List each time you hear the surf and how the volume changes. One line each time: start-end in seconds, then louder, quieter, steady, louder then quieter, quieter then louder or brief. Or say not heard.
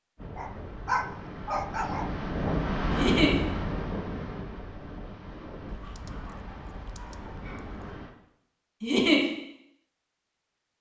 0.1-8.2 louder then quieter.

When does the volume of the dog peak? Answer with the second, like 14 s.
1 s.